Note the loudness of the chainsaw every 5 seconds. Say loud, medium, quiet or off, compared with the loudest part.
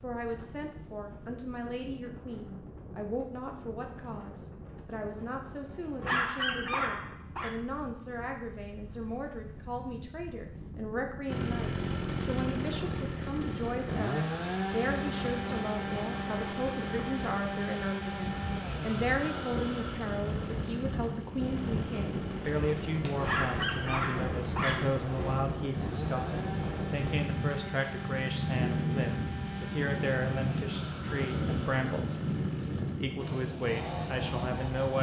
off, off, loud, loud, medium, medium, medium.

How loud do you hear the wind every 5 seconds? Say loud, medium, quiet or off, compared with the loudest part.
quiet, quiet, medium, medium, loud, loud, loud.